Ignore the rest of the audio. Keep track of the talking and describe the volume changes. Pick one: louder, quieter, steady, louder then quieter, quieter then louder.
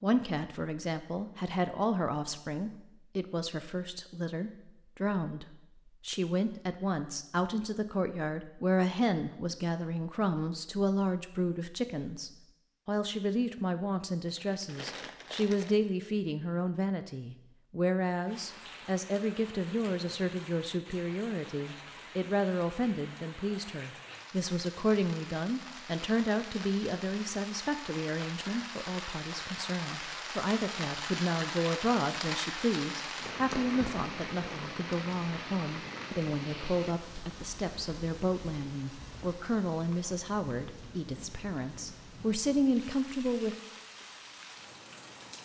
steady.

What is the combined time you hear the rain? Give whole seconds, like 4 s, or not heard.
27 s.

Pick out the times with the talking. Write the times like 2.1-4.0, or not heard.
0.0-43.6.